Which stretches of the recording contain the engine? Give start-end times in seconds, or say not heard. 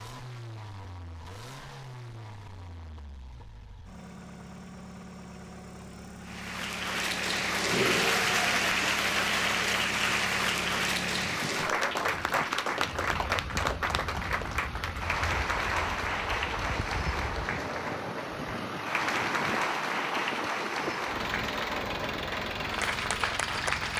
0.0-23.9.